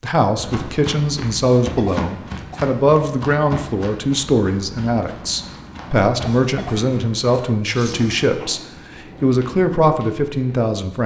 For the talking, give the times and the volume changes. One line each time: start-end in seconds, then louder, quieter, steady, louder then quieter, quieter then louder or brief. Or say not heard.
0.0-11.0 steady.